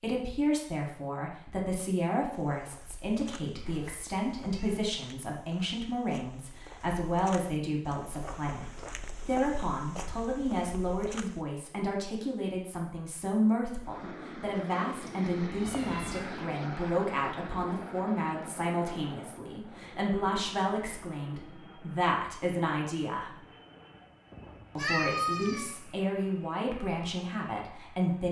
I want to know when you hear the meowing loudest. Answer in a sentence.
The volume of the meowing peaks at 25 seconds.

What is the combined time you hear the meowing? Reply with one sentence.
You can hear the meowing for 3 seconds altogether.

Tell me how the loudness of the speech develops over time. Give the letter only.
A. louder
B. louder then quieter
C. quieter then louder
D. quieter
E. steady
E.